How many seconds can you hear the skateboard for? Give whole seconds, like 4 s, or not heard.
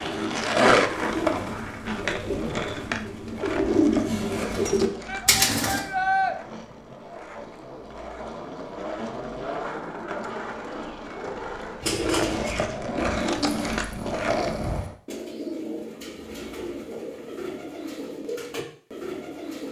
15 s.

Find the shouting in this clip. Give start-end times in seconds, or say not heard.
5.0-6.3.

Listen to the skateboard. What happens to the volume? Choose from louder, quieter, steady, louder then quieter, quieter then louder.
quieter then louder.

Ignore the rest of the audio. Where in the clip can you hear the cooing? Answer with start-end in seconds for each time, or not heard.
0.0-5.8, 11.8-19.6.